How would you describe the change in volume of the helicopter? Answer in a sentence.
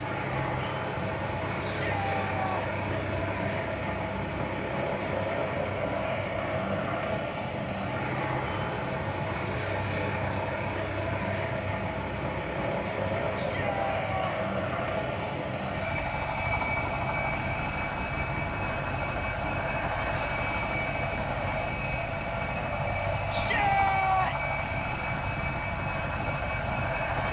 The loudness of the helicopter stays about the same.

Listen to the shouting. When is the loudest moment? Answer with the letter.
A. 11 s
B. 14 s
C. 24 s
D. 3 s
C.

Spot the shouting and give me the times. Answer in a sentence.
The shouting can be heard from 1.6 to 2.9 s, from 13.3 to 14.3 s and from 23.3 to 24.6 s.